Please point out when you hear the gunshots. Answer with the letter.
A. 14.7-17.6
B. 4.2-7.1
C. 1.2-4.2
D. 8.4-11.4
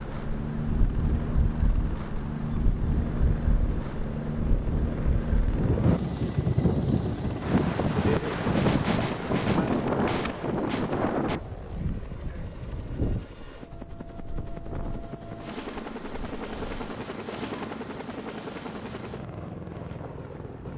D.